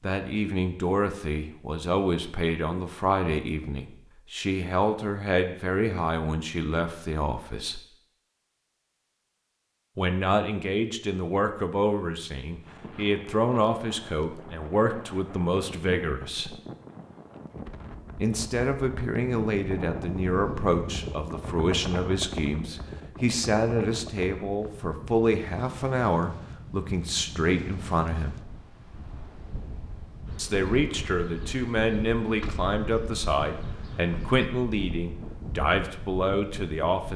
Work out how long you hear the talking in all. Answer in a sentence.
You can hear the talking for 31 seconds altogether.